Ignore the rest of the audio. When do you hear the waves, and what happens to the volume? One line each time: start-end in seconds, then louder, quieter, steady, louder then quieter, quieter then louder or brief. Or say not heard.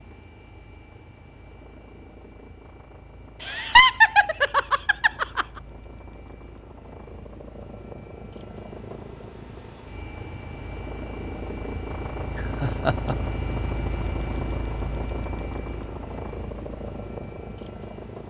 not heard.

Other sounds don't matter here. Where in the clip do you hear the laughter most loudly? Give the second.
4 s.